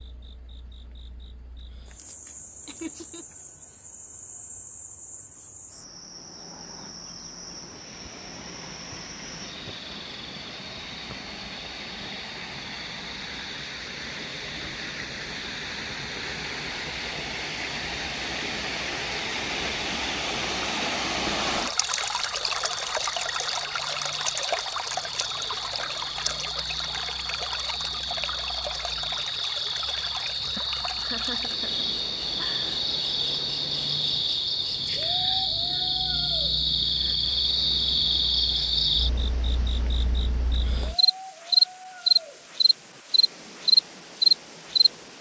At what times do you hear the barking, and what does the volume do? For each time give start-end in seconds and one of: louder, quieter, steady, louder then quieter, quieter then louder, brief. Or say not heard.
not heard.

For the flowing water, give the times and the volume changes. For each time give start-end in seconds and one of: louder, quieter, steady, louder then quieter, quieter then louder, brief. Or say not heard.
7.4-45.1 louder then quieter.